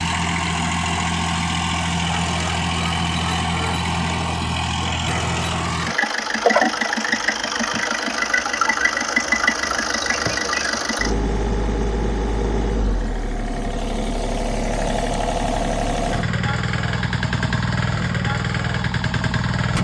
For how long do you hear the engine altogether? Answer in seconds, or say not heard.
20 s.